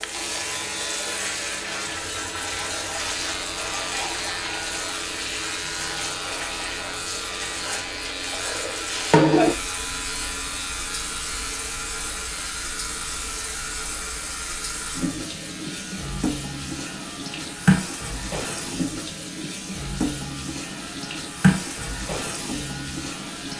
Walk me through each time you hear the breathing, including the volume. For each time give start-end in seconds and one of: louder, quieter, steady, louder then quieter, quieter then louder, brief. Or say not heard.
not heard.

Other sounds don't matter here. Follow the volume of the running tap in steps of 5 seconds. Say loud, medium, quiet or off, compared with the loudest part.
medium, loud, medium, loud, loud.